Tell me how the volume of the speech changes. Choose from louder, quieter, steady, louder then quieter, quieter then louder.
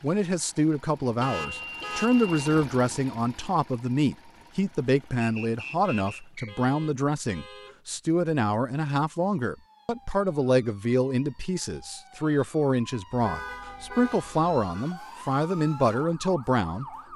steady.